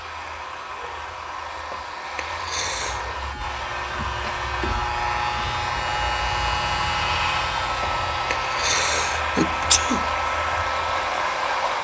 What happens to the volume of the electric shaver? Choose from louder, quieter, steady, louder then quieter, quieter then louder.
louder then quieter.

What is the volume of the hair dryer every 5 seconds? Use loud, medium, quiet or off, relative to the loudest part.
medium, loud, loud.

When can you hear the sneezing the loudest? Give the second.
10 s.